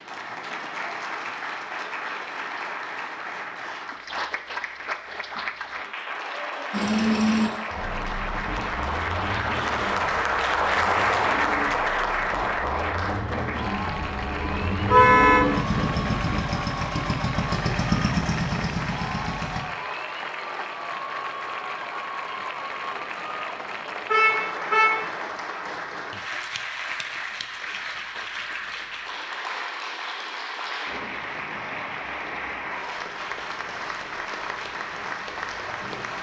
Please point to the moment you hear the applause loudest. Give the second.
11 s.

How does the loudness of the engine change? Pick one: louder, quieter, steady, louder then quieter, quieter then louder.
quieter then louder.